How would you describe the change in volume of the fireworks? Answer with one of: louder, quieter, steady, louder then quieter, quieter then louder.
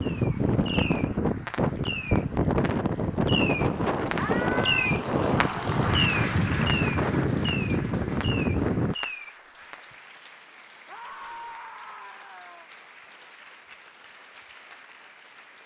louder then quieter.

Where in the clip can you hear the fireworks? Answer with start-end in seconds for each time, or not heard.
0.0-9.8.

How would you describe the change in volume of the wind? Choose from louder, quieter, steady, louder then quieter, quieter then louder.
steady.